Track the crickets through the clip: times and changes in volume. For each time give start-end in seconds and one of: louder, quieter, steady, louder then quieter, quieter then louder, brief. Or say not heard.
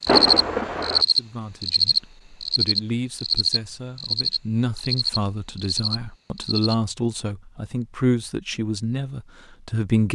0.0-6.8 quieter.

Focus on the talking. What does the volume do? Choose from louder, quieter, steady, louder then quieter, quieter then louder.
louder.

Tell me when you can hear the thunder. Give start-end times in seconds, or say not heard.
0.1-1.1.